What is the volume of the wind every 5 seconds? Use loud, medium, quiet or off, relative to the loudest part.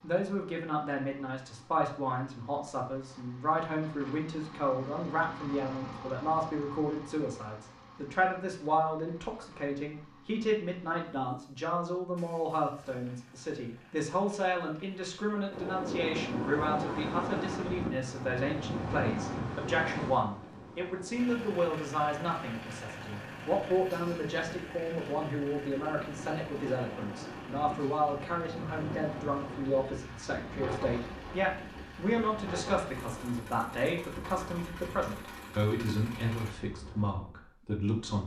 off, off, off, loud, medium, medium, medium, quiet.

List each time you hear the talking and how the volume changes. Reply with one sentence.
You can hear the talking from 0.0 to 38.2 s, at a steady volume.